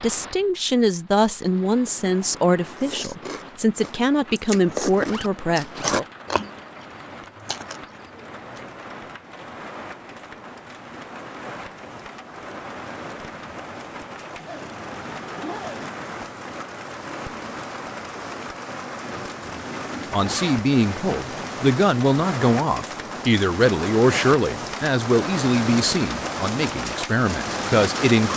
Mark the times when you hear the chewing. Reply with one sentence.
You can hear the chewing from 2.8 to 8.7 s.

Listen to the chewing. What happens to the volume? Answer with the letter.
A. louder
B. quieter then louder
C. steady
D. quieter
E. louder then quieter
E.